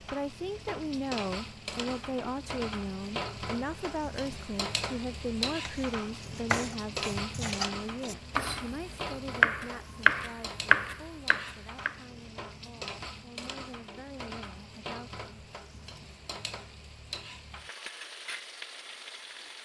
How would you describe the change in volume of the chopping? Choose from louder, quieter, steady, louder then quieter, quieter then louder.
louder.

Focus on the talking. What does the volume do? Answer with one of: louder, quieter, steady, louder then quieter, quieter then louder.
quieter.